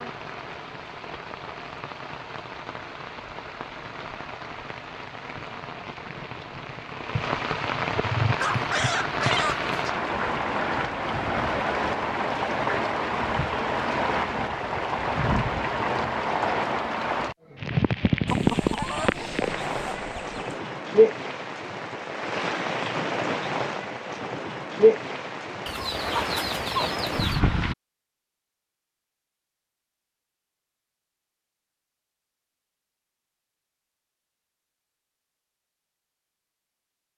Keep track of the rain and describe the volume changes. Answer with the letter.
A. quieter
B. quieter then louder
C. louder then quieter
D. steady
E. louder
E.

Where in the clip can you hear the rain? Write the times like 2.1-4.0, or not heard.
0.0-27.8.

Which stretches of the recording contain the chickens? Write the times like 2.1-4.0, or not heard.
8.4-9.9, 18.2-20.4, 25.6-27.4.